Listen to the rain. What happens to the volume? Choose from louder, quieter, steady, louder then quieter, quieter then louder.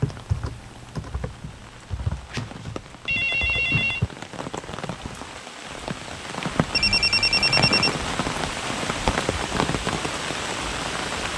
louder.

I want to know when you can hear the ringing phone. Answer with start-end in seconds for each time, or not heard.
2.3-4.0, 6.7-8.0.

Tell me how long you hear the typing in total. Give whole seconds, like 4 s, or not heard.
4 s.